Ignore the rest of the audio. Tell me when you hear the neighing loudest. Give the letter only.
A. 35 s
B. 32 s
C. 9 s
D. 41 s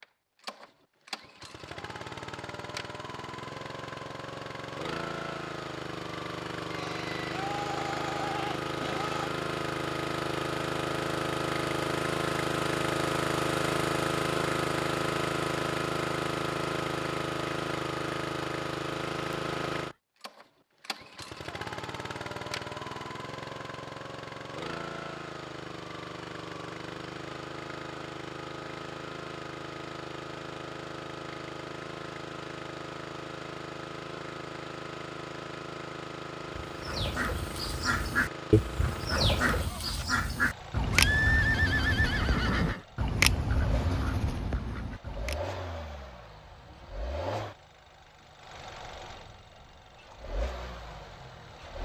D.